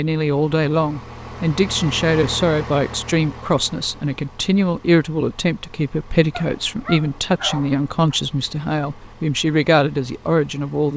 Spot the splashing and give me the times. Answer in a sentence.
You can't hear the splashing here.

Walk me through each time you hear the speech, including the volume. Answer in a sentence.
The speech can be heard from 0.0 to 10.9 s, at a steady volume.